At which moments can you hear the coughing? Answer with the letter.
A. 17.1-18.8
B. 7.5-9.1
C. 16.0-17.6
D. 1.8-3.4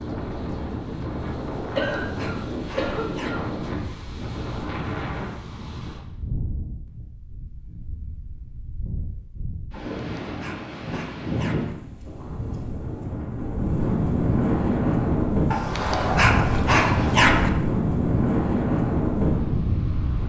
D.